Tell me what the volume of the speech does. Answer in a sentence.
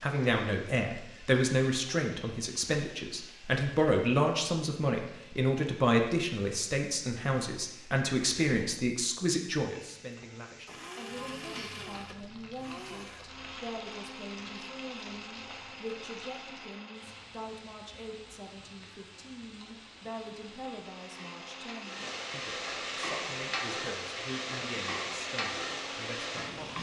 The volume of the speech goes down.